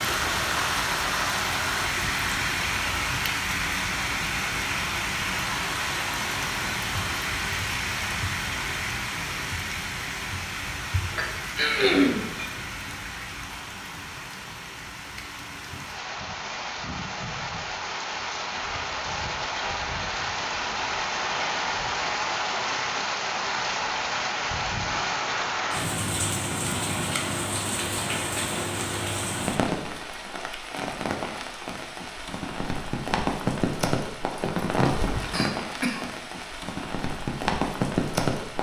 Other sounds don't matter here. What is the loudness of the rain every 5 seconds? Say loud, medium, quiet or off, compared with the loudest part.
loud, loud, medium, medium, loud, loud, loud, loud.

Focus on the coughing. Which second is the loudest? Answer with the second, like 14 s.
12 s.